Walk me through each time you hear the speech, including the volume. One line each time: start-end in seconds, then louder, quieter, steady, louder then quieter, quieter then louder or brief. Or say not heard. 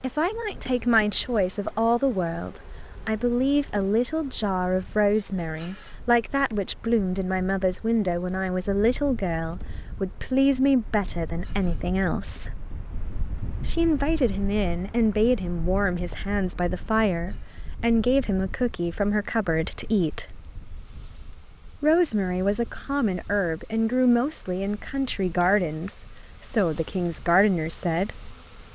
0.0-12.5 steady
13.7-20.4 steady
21.8-28.1 steady.